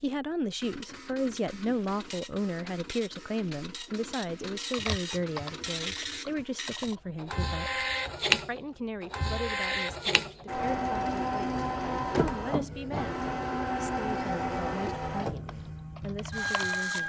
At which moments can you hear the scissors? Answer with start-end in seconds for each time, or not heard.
not heard.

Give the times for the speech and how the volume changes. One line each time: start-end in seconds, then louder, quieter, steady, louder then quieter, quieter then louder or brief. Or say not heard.
0.0-17.0 quieter.